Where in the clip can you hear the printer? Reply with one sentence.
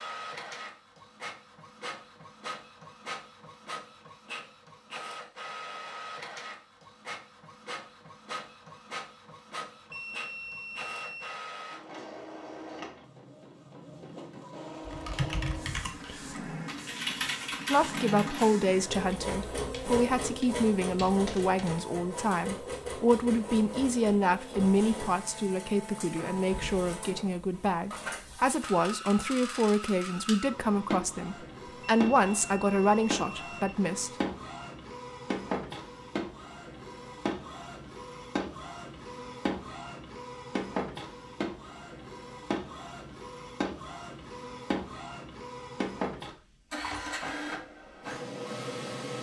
You can hear the printer from 0.0 to 49.1 s.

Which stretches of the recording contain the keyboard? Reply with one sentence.
The keyboard can be heard from 14.8 to 21.9 s.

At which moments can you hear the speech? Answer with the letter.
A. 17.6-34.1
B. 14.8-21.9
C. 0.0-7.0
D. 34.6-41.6
A.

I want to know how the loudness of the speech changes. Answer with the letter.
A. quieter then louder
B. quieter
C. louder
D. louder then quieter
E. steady
E.